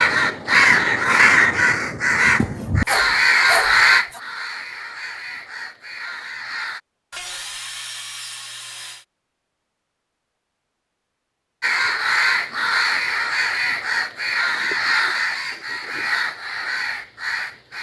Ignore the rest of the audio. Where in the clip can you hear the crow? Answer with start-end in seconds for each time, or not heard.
0.0-6.8, 11.6-17.7.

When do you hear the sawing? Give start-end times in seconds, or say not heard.
2.4-4.2, 7.1-9.1, 14.5-16.1.